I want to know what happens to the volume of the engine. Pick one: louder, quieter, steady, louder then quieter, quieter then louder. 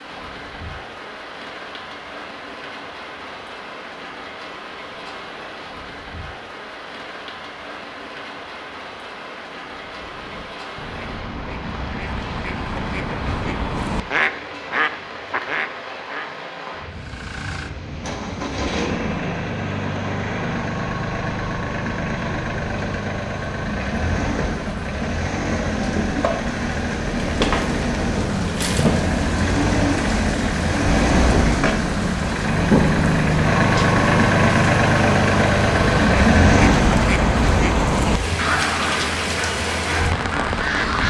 louder.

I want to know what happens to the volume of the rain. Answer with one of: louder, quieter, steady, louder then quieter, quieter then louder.
louder.